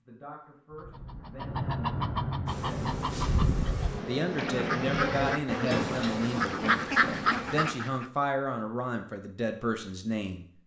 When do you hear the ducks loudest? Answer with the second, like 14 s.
7 s.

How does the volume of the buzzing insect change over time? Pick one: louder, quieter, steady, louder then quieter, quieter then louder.
louder then quieter.